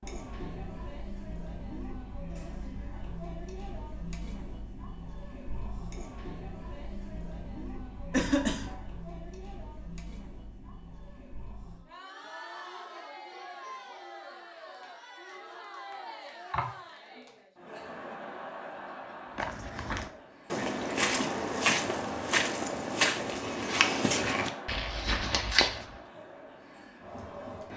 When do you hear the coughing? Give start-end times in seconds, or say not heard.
8.1-8.8, 16.5-17.2.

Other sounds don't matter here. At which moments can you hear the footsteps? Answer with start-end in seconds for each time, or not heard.
19.4-25.9.